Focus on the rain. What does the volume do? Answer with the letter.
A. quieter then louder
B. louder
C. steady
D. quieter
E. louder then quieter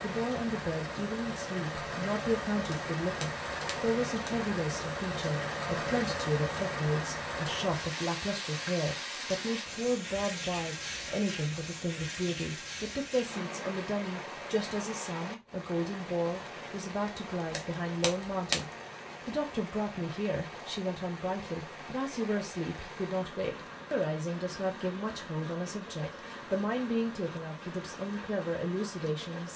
D.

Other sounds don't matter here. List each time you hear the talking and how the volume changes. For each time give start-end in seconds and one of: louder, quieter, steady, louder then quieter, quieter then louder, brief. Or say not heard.
0.0-29.5 steady.